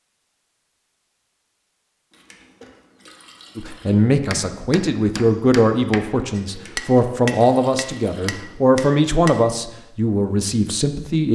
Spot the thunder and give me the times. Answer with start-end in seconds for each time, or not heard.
not heard.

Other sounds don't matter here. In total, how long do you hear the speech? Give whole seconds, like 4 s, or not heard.
8 s.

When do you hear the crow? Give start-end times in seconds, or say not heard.
not heard.